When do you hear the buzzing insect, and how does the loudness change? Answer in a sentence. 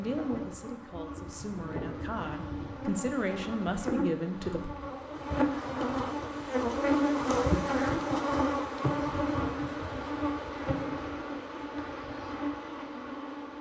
You can hear the buzzing insect from 0.0 to 13.5 s, getting louder then quieter.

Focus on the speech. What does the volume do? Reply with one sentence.
The volume of the speech goes up.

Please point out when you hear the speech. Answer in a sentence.
The speech can be heard from 0.0 to 4.7 s.